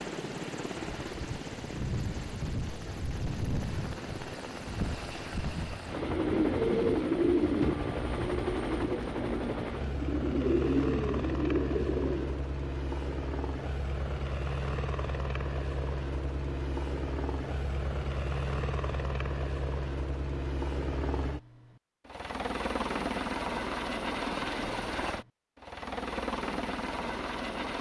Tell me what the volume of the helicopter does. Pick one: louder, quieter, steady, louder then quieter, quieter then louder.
steady.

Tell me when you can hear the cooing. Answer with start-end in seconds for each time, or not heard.
6.0-12.4.